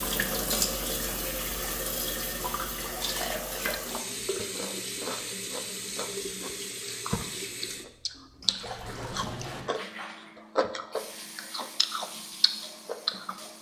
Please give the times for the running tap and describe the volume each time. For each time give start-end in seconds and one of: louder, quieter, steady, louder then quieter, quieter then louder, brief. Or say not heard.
0.0-13.5 quieter.